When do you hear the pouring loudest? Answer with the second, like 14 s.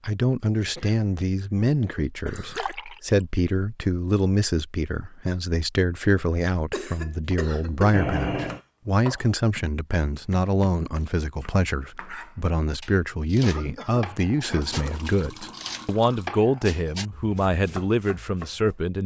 8 s.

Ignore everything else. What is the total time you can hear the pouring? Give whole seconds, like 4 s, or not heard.
3 s.